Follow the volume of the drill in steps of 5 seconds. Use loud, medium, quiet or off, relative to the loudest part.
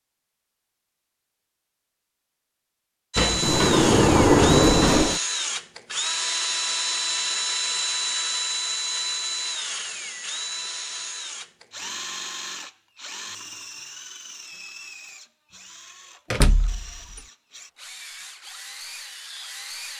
loud, loud, medium, quiet.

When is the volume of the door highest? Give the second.
4 s.